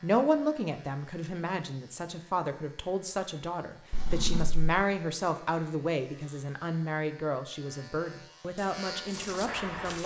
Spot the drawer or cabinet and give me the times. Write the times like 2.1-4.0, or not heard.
3.9-4.7.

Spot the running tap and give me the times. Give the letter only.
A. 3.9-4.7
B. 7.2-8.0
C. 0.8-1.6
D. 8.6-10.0
D.